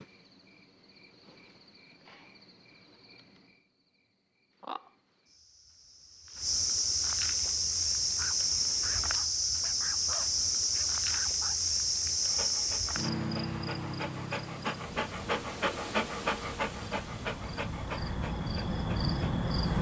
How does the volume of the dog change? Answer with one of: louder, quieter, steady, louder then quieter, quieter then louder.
louder then quieter.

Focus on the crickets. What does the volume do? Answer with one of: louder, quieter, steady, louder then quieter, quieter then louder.
louder then quieter.